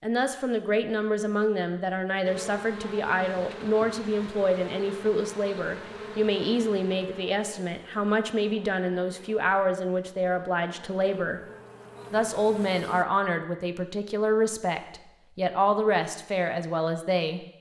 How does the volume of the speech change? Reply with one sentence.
The volume of the speech stays about the same.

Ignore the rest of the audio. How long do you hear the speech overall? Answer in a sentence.
The speech can be heard for 17 seconds in total.